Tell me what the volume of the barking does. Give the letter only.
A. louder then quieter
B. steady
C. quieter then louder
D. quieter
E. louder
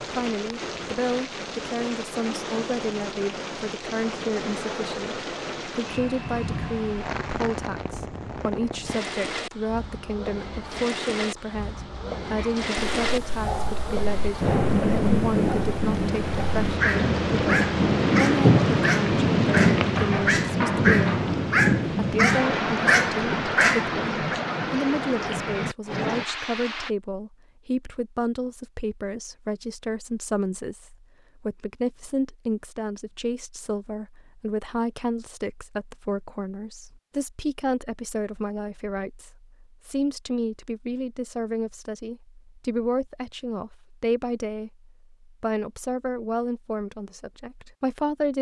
E.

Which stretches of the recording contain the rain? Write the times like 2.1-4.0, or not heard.
0.0-26.9.